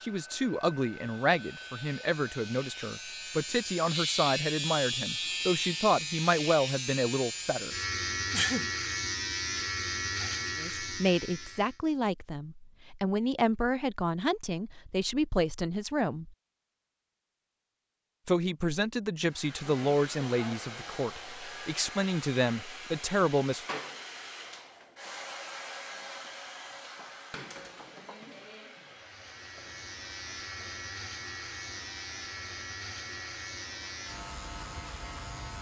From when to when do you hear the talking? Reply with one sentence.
The talking can be heard from 0.0 to 7.8 s, from 10.6 to 16.3 s and from 18.2 to 23.8 s.